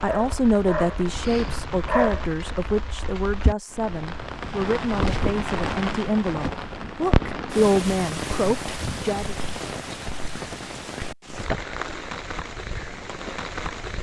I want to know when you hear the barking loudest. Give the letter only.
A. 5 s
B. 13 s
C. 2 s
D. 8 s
C.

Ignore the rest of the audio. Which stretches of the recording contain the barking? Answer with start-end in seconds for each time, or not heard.
0.0-2.2.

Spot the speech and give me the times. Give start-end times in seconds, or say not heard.
0.0-9.3.